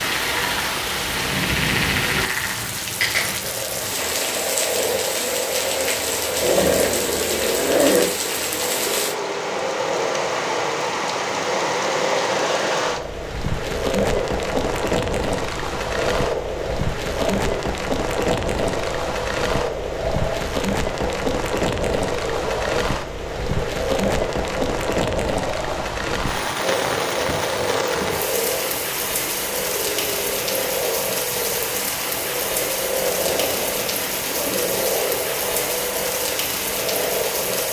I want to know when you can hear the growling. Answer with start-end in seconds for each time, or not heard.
6.4-8.1, 33.0-34.9.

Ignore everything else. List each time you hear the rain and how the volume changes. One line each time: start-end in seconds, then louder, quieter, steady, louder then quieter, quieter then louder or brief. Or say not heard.
0.0-37.6 steady.